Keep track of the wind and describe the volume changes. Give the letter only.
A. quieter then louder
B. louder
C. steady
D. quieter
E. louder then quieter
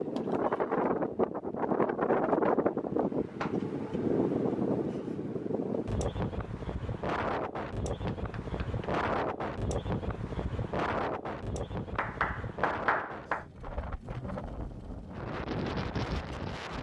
D.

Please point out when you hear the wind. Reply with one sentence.
You can hear the wind from 0.0 to 16.7 s.